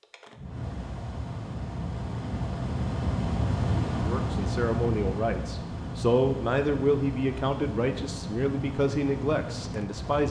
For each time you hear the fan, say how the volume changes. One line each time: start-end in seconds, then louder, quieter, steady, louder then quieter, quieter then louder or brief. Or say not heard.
0.0-10.2 louder then quieter.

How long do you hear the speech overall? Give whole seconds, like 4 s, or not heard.
6 s.